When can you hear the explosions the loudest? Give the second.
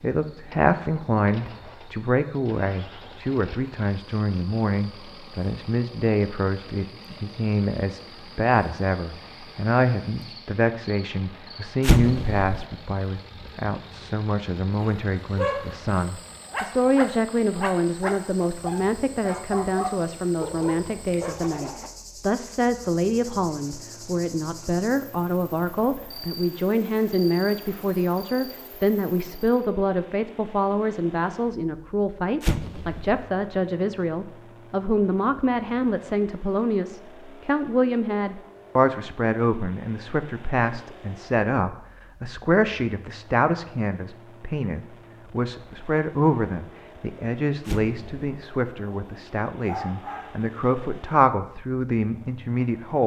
12 s.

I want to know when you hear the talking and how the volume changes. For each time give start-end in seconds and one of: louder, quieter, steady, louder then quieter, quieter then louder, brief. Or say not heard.
0.0-53.0 steady.